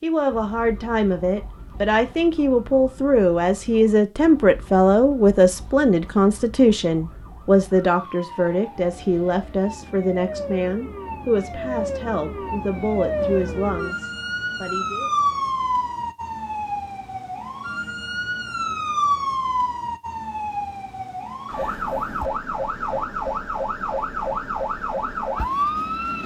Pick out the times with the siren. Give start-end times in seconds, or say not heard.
0.2-26.2.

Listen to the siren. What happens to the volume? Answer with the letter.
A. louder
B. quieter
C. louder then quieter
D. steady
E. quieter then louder
A.